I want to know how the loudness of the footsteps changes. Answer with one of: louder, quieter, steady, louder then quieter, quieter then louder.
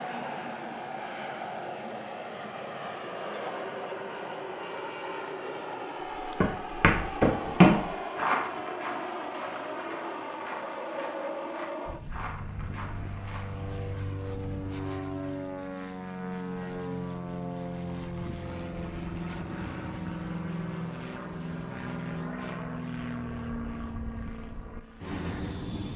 quieter.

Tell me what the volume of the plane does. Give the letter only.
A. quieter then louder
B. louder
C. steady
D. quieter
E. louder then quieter
C.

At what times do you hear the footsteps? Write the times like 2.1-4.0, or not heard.
6.2-13.5.